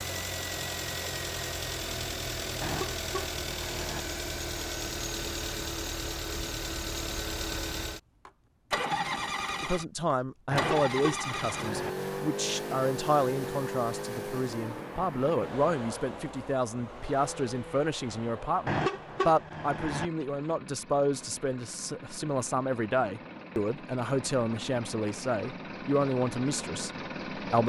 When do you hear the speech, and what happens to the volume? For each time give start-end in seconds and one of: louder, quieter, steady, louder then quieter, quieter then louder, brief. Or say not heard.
9.6-27.6 steady.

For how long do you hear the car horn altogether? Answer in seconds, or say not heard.
4 s.